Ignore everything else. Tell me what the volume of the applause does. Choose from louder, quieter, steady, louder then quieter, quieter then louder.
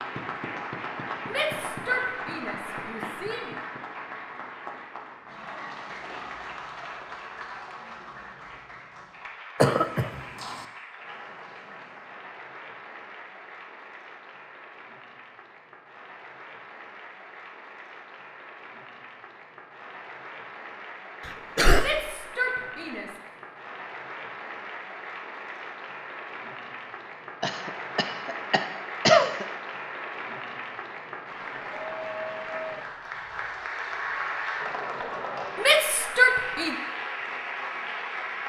quieter then louder.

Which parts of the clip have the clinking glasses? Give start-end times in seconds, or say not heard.
not heard.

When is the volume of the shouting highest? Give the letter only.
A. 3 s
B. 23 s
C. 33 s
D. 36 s
D.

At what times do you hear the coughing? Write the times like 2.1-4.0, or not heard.
9.6-10.7, 21.2-21.9, 27.4-29.4.